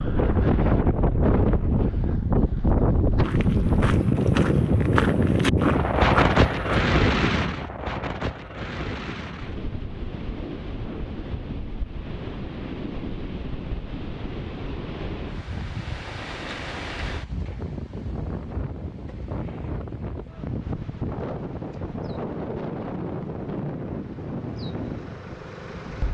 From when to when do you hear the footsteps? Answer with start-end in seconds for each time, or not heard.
3.2-6.9.